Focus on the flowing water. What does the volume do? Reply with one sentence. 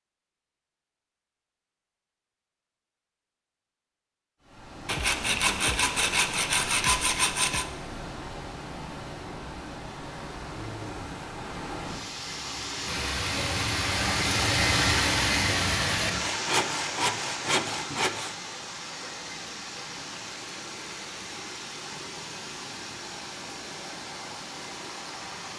The loudness of the flowing water goes up, then down.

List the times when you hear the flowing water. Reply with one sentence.
You can hear the flowing water from 4.4 to 25.5 s.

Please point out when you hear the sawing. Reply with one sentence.
The sawing can be heard from 4.8 to 7.7 s and from 16.1 to 18.4 s.